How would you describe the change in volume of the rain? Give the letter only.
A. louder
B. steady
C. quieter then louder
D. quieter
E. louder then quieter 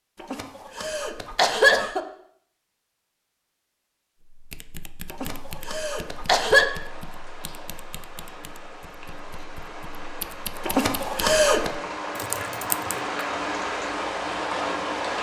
A.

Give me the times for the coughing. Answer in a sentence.
You can hear the coughing from 0.2 to 2.0 s, from 5.1 to 6.7 s and from 10.7 to 11.7 s.